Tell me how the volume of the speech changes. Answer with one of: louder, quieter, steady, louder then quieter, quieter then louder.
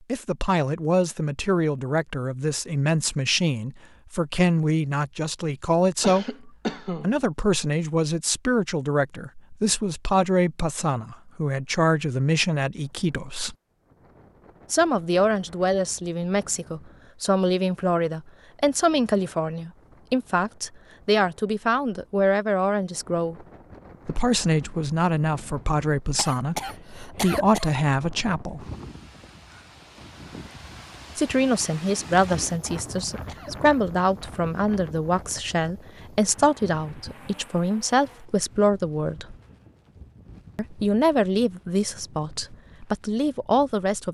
steady.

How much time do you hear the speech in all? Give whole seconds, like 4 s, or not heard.
38 s.